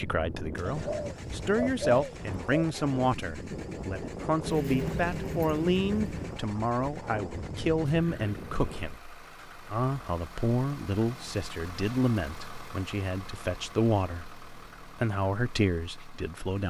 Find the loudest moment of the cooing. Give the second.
2 s.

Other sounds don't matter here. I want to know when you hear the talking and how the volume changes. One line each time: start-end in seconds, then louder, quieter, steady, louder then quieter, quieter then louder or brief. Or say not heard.
0.0-16.6 steady.